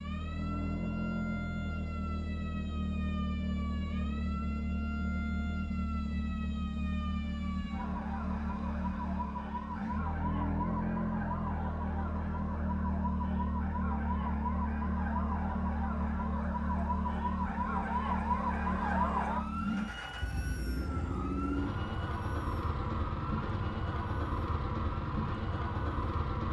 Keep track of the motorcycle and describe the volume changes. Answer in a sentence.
The loudness of the motorcycle stays about the same.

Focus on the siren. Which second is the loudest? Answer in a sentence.
The volume of the siren peaks at 19 seconds.